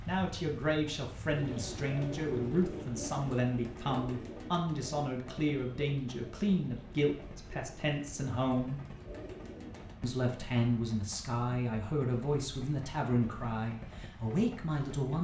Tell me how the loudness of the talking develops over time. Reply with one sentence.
The loudness of the talking stays about the same.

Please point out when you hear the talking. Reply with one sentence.
The talking can be heard from 0.1 to 8.8 s and from 10.0 to 15.1 s.